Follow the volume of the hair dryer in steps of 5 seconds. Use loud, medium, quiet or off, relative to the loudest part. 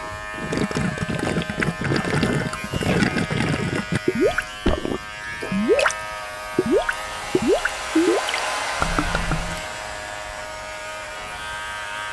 off, loud, medium.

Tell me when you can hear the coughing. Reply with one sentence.
The coughing can't be heard in this clip.